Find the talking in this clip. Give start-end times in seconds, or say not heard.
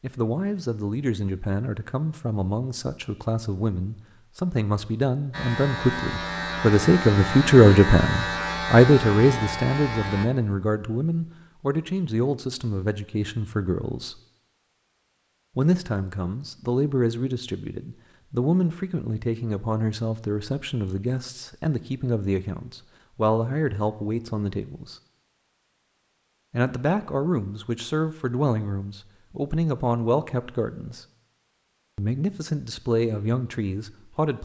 0.0-14.2, 15.6-24.9, 26.5-31.1, 31.9-34.4.